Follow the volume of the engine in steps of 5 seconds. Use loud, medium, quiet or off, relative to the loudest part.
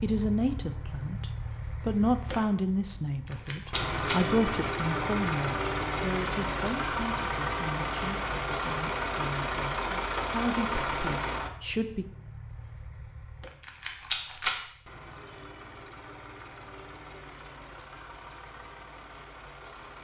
medium, loud, medium, quiet.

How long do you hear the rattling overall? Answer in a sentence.
You can hear the rattling for 2 seconds altogether.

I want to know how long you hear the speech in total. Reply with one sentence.
The speech can be heard for 12 seconds in total.